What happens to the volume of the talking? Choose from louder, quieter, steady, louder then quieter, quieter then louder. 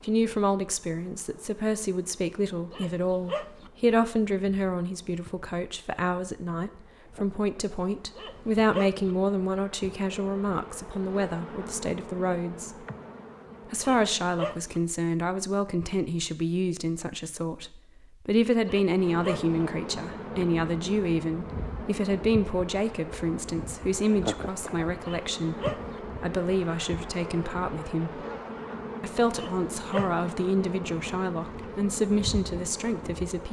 steady.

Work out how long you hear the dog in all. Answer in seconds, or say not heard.
6 s.